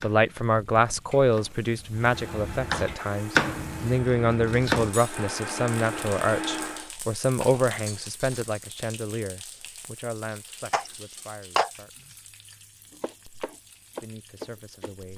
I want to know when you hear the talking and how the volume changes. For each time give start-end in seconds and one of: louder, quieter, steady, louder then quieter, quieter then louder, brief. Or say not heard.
0.0-12.2 quieter
14.0-15.1 brief.